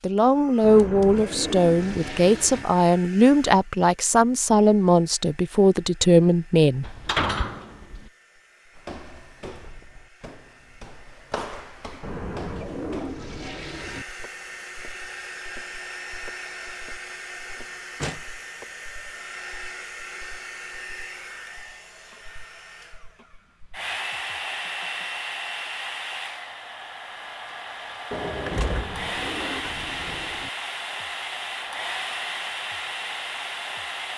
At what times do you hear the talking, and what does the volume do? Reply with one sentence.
The talking can be heard from 0.0 to 6.8 s, at a steady volume.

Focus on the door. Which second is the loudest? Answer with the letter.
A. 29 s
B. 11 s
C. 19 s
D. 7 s
D.